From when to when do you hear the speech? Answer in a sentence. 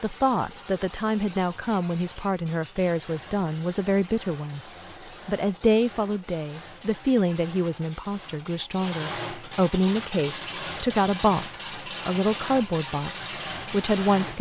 You can hear the speech from 0.0 to 4.6 s and from 5.2 to 14.3 s.